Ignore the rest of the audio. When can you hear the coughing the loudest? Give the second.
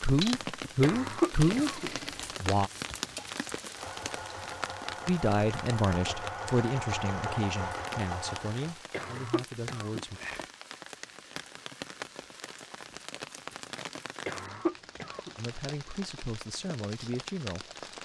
1 s.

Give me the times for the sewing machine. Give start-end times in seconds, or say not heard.
0.0-8.8.